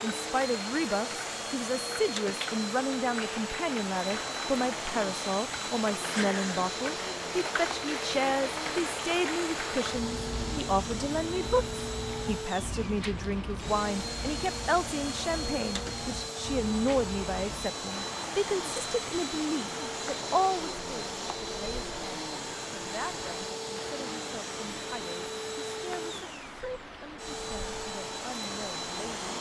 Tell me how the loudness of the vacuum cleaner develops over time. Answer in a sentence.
The loudness of the vacuum cleaner stays about the same.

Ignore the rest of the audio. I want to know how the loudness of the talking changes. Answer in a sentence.
The volume of the talking goes down.